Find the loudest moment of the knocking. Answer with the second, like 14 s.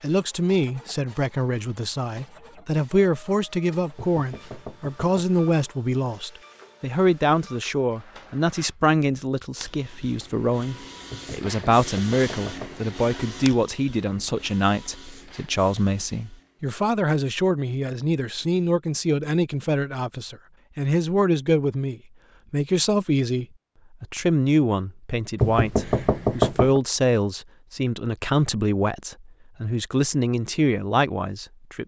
26 s.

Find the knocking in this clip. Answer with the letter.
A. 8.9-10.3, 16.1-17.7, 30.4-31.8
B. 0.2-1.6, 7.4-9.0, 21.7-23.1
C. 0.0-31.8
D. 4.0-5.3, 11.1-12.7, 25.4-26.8
D.